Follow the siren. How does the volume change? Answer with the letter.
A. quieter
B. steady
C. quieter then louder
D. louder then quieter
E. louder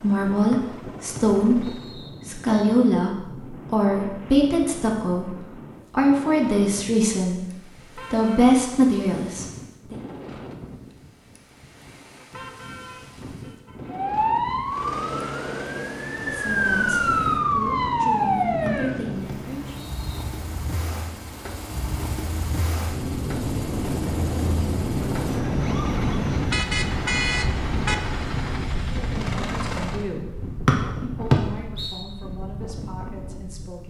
C.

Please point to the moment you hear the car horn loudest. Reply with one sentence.
The volume of the car horn peaks at 27 seconds.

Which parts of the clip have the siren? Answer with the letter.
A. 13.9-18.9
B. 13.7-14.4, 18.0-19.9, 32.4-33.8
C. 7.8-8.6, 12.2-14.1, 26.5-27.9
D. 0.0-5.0
A.